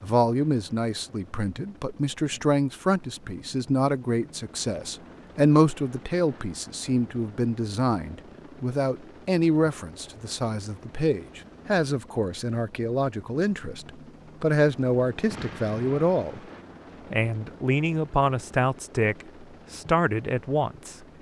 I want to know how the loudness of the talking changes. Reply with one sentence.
The volume of the talking stays about the same.